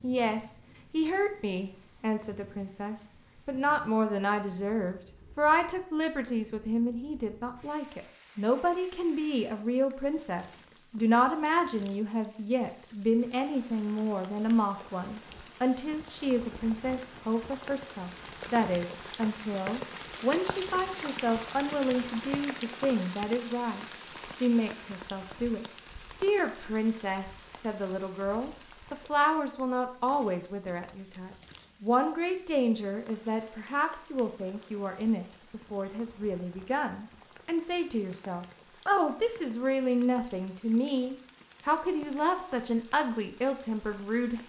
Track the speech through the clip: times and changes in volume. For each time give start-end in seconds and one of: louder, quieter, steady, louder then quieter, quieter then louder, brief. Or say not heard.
0.0-44.4 steady.